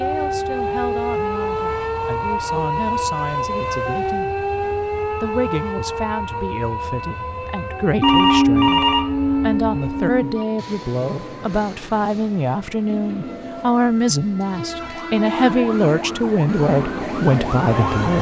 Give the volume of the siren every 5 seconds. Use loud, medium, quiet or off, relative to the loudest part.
loud, medium, quiet, medium.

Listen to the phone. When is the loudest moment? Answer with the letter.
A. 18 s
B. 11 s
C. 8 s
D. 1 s
C.